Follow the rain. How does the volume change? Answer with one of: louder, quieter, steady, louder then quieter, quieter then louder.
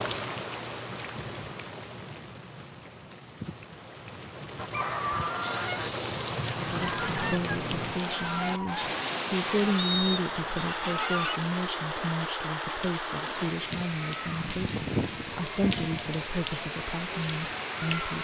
louder.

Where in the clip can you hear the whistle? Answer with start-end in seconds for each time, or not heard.
9.8-10.7.